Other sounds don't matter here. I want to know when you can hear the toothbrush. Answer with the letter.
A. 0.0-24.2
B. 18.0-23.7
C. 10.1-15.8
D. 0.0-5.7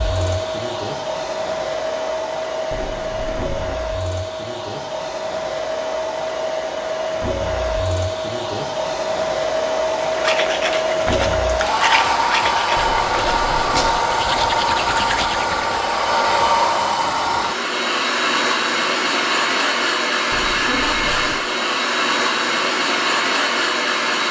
C.